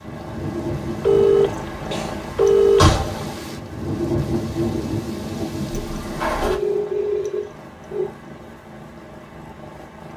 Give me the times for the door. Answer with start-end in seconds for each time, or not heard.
2.4-3.2, 5.8-6.6.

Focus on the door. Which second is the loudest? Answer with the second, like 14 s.
3 s.